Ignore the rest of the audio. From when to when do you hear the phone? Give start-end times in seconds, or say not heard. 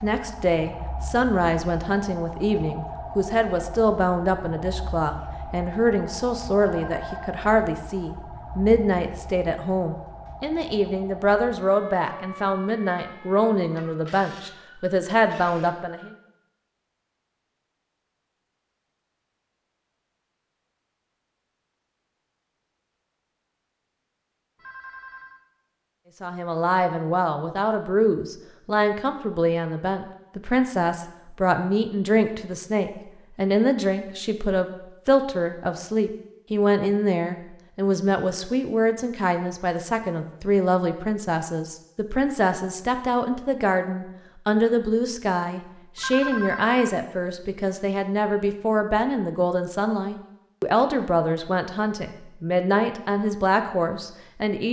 6.6-7.3, 24.6-25.4, 46.0-46.8.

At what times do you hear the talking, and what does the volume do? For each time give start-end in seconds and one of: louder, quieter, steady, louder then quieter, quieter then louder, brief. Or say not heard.
0.0-16.1 steady
26.2-54.6 steady.